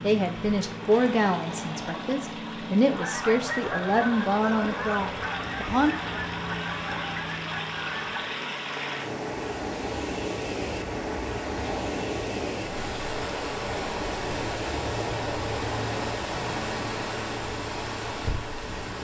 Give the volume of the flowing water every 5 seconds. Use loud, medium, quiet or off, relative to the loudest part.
medium, loud, loud, loud.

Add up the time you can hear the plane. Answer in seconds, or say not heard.
19 s.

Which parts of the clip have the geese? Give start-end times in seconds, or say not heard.
2.9-8.3.